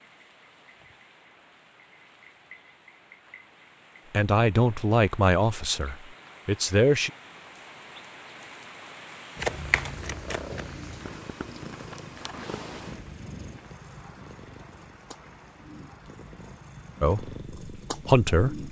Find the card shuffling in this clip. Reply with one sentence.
The card shuffling can be heard from 9.3 to 10.6 s.